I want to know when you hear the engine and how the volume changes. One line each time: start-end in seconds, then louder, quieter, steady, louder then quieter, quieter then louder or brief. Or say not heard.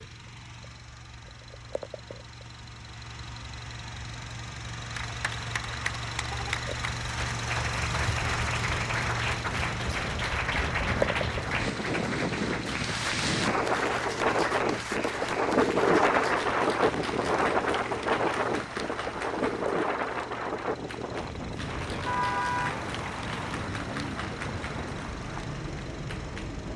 0.0-26.7 louder then quieter.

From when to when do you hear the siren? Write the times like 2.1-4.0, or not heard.
not heard.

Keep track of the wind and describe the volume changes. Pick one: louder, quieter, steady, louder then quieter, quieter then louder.
louder then quieter.